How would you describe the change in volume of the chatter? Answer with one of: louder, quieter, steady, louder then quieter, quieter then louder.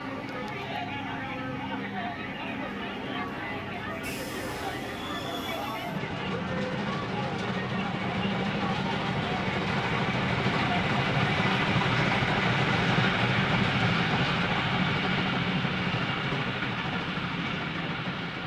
steady.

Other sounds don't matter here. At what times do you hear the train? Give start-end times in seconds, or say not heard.
0.0-18.4.